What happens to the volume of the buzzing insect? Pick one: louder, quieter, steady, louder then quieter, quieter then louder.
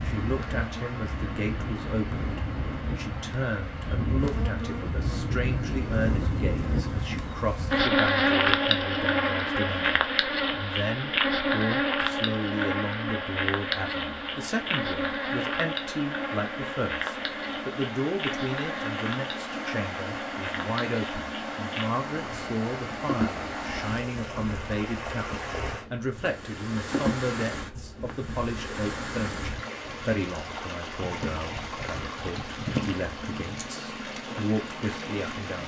louder then quieter.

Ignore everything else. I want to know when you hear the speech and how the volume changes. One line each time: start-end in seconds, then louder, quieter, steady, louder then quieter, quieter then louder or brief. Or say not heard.
0.0-35.6 steady.